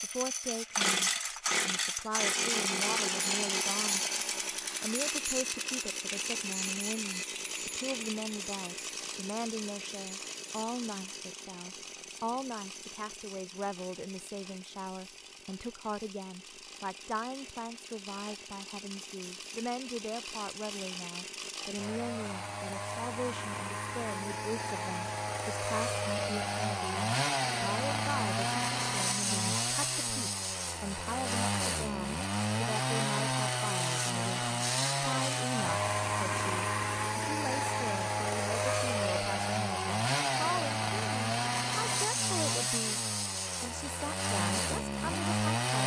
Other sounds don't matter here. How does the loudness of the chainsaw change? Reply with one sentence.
The loudness of the chainsaw goes down, then up.